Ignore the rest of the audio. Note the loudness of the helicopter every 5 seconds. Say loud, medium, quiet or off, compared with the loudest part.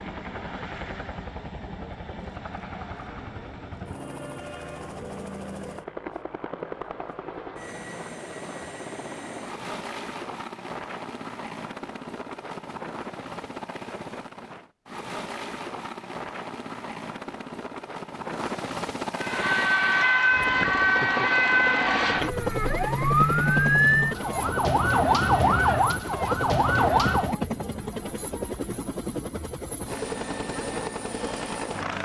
medium, medium, medium, loud, loud, loud, loud.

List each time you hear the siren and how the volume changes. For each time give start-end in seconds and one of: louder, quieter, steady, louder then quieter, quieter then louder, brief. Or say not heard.
19.2-27.4 steady.